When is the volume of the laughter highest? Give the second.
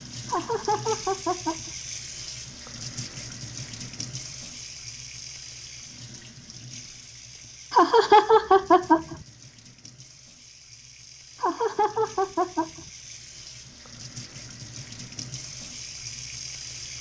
8 s.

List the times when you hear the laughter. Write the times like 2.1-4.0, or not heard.
0.2-1.7, 7.7-9.2, 11.4-12.8.